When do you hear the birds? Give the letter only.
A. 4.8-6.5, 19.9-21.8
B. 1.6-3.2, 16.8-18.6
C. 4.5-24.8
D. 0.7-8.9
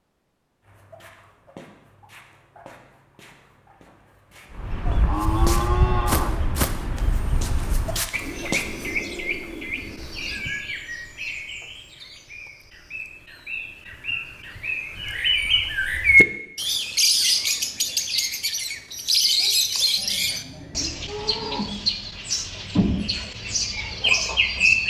C.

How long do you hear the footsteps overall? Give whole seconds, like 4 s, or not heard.
8 s.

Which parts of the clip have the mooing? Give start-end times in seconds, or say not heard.
4.8-6.5, 19.9-21.8.